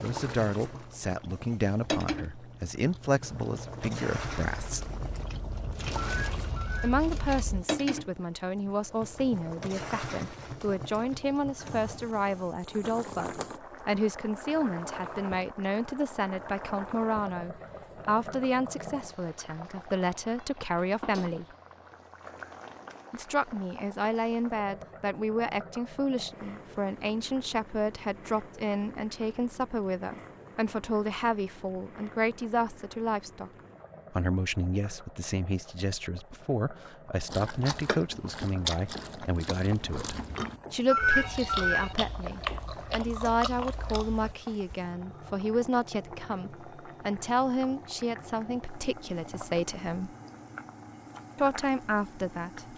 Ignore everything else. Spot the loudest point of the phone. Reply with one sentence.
The volume of the phone peaks at 41 seconds.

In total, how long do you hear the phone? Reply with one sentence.
The phone can be heard for 2 seconds in total.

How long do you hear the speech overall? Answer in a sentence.
The speech can be heard for 47 seconds in total.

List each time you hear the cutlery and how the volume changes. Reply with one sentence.
You can't hear the cutlery here.